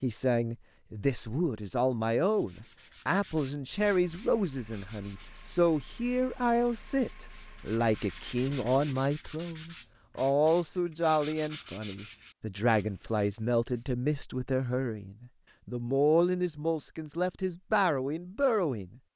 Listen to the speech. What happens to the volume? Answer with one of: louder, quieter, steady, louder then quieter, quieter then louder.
steady.